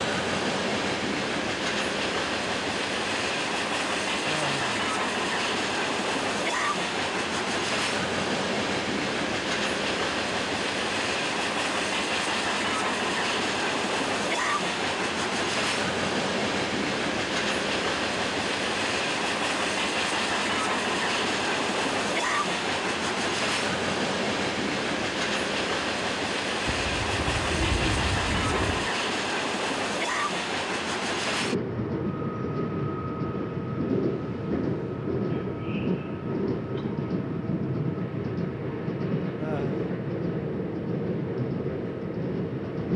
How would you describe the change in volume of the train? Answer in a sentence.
The volume of the train stays about the same.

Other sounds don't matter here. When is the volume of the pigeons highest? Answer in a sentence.
The volume of the pigeons peaks at 28 seconds.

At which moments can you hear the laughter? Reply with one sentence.
The laughter can be heard from 4.2 to 4.8 s and from 39.4 to 39.9 s.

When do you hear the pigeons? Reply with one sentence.
You can hear the pigeons from 26.6 to 28.9 s.